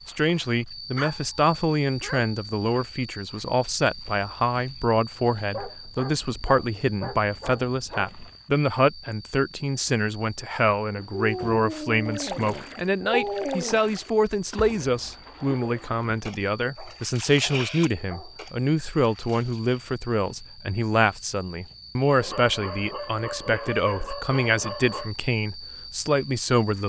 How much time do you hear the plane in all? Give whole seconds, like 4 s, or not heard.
not heard.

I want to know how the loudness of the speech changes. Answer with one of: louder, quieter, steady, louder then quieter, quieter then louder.
steady.